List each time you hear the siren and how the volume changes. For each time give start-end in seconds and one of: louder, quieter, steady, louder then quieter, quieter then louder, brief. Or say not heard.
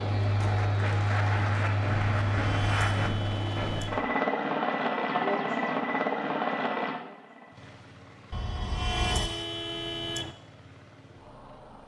not heard.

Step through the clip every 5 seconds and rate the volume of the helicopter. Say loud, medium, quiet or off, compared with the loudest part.
loud, loud, quiet.